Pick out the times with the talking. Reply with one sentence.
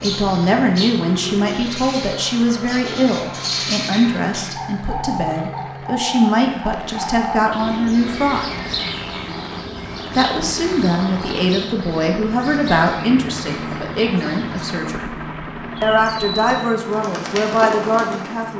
You can hear the talking from 0.0 to 8.6 s, from 10.2 to 15.1 s and from 15.8 to 18.5 s.